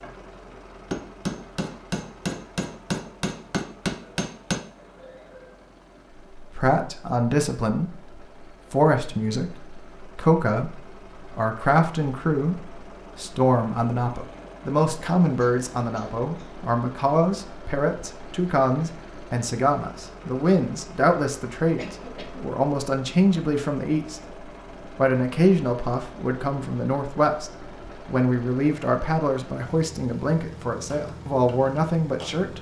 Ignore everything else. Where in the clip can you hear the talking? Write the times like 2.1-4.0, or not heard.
6.3-8.0, 8.7-24.2, 24.9-32.5.